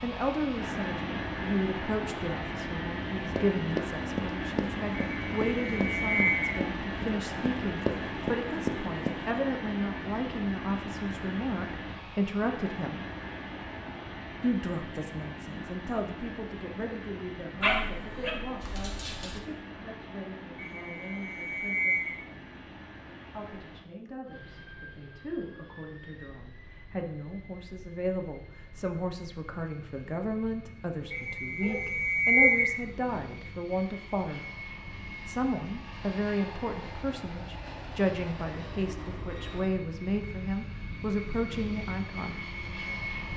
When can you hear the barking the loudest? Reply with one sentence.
The loudest moment of the barking is at 18 seconds.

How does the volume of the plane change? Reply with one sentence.
The loudness of the plane goes down, then up.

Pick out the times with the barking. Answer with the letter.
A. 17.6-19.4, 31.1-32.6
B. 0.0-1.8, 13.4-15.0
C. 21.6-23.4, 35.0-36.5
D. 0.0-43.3
A.